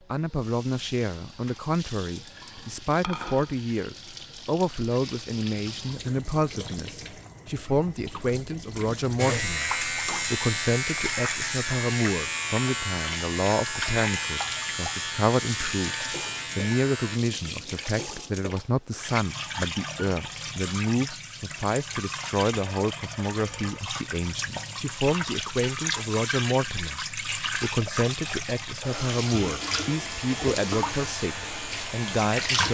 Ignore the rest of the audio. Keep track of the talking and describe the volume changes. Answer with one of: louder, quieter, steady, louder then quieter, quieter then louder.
steady.